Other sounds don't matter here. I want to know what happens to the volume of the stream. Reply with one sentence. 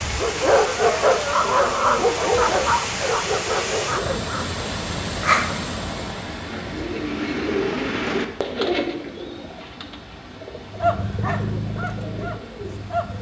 The volume of the stream goes down.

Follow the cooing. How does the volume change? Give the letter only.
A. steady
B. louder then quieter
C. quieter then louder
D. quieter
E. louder
D.